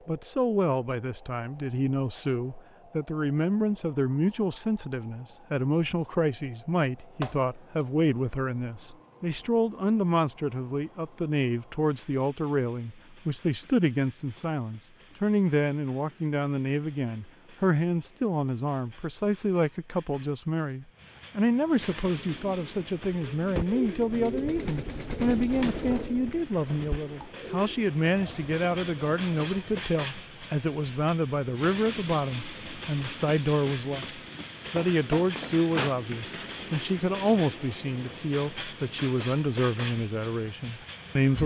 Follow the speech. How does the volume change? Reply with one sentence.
The volume of the speech stays about the same.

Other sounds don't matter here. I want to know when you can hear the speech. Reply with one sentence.
The speech can be heard from 0.1 to 41.4 s.